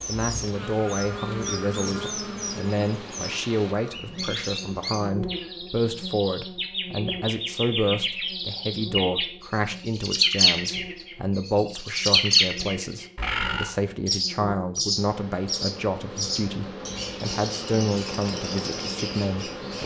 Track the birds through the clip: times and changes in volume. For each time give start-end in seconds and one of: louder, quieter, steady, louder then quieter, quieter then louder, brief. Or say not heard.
0.0-19.8 louder then quieter.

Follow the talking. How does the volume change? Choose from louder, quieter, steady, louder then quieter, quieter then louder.
steady.